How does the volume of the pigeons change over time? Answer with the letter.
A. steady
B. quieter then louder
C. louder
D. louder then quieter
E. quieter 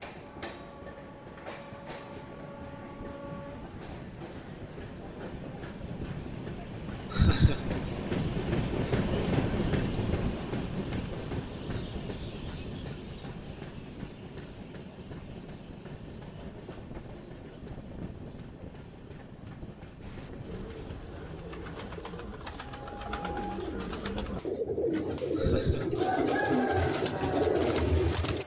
C.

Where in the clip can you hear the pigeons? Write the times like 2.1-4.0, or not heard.
20.0-28.4.